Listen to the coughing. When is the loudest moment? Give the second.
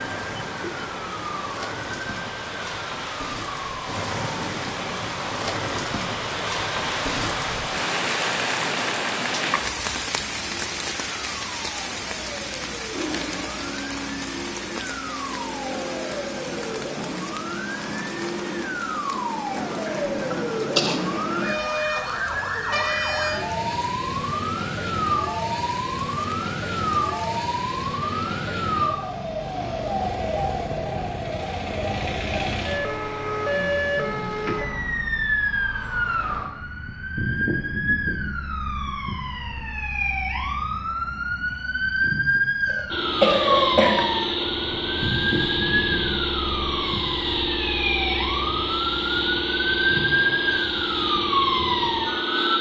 43 s.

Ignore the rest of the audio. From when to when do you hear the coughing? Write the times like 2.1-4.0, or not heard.
19.8-21.0, 42.6-44.5.